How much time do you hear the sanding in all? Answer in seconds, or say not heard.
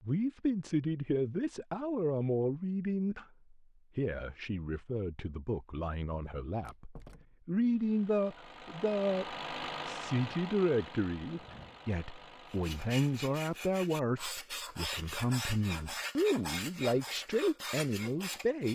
6 s.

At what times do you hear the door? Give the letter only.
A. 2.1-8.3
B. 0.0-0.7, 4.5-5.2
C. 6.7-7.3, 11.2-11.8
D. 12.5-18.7
C.